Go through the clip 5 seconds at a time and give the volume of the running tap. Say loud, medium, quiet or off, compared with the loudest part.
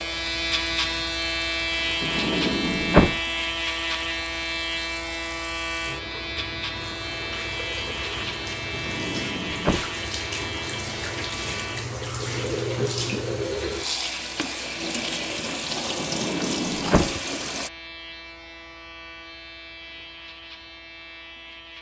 quiet, medium, loud, loud, off.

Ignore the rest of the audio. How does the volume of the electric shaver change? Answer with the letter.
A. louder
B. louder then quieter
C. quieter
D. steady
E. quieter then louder
C.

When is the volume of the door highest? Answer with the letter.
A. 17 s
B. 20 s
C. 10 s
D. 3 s
D.